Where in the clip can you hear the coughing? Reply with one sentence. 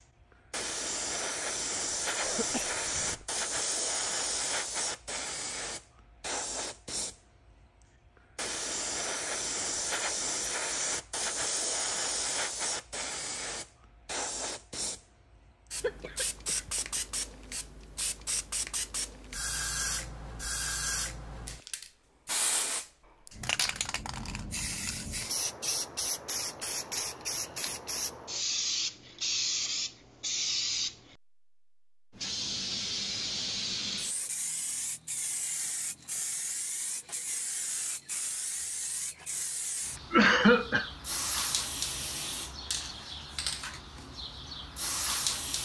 The coughing can be heard from 2.2 to 3.2 s, from 15.8 to 17.0 s and from 40.1 to 40.9 s.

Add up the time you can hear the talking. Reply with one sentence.
You can't hear the talking here.